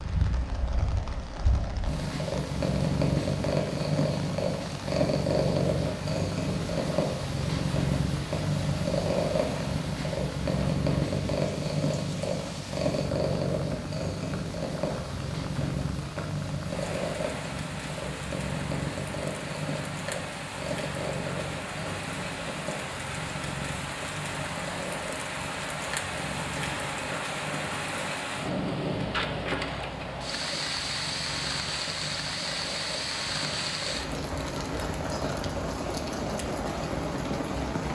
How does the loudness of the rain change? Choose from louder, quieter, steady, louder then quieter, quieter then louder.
louder.